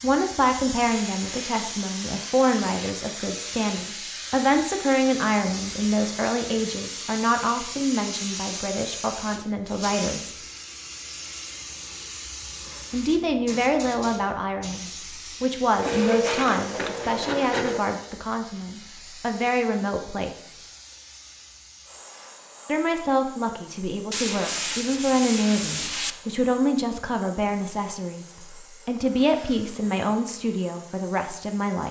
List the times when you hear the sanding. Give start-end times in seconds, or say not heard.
0.9-2.9, 15.8-17.8, 24.1-26.1.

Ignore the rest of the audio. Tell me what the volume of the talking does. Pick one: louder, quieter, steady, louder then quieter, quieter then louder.
steady.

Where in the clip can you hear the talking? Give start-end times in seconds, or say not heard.
0.0-10.3, 12.9-20.6, 22.6-31.8.